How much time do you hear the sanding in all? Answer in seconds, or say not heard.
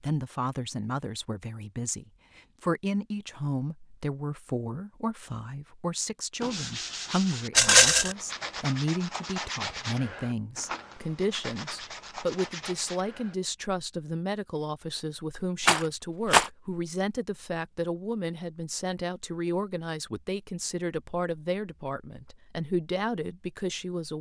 7 s.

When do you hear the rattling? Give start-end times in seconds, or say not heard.
7.5-8.2, 15.7-16.5.